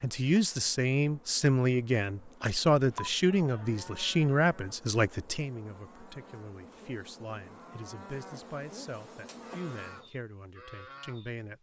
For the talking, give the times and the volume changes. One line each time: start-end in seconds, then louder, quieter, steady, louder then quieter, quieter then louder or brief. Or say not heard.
0.0-11.5 quieter.